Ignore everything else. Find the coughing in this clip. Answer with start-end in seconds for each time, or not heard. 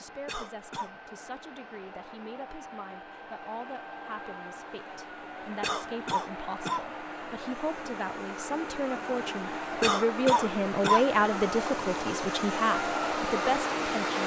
0.2-0.9, 5.6-6.8, 9.8-11.1.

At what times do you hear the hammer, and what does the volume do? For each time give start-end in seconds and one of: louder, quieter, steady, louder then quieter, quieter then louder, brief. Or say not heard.
not heard.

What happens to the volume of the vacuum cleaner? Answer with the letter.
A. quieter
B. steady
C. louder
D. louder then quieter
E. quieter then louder
C.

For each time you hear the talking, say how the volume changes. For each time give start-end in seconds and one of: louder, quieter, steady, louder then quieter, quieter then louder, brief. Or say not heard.
0.0-14.2 louder.